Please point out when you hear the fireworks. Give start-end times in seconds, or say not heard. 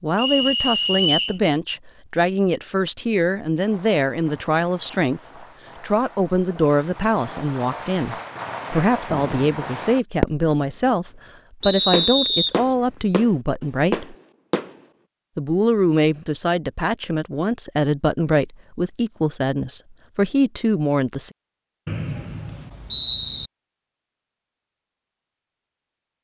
3.6-10.5, 11.6-14.8.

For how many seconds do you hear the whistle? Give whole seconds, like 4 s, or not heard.
4 s.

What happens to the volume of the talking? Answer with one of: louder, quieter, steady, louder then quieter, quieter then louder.
steady.